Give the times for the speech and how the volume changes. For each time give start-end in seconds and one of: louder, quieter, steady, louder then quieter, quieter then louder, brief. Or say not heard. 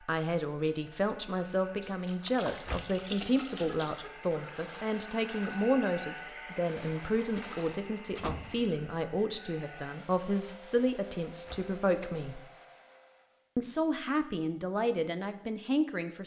0.1-12.4 steady
13.6-16.2 brief.